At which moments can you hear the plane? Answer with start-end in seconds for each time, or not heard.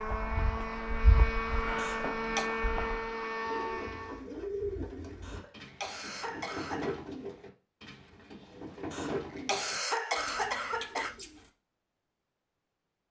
0.0-4.2.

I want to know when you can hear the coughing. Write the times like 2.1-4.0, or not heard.
1.8-2.5, 5.2-7.0, 8.9-11.2.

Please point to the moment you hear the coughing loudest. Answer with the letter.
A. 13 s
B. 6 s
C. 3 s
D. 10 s
D.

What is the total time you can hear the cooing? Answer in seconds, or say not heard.
8 s.